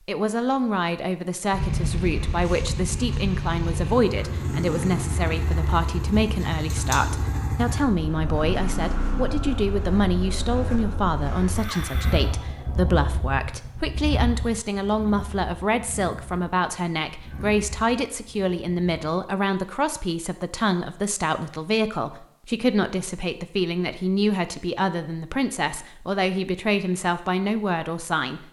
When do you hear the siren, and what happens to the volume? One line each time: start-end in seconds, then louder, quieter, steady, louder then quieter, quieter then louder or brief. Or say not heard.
not heard.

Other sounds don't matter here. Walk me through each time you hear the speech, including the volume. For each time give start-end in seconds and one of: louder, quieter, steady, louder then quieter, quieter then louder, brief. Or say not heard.
0.1-28.4 steady.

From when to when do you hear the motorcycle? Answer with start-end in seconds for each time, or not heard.
1.5-19.1.